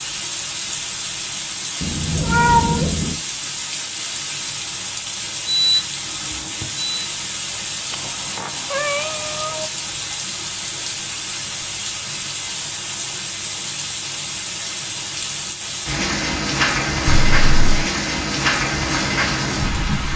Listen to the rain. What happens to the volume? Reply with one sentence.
The volume of the rain goes up.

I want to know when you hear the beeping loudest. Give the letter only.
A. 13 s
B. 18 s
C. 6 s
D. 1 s
C.